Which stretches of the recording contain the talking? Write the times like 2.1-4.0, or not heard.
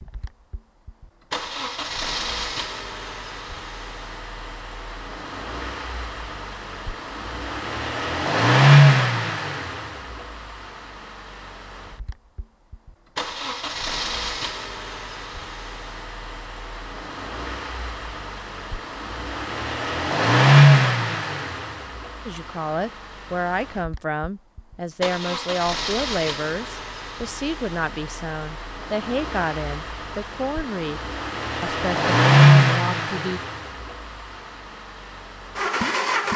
22.2-33.4.